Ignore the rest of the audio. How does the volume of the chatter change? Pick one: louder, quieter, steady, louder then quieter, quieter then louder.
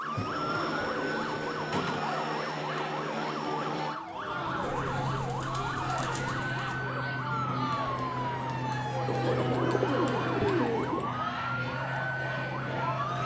steady.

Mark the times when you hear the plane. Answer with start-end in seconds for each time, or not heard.
0.0-13.2.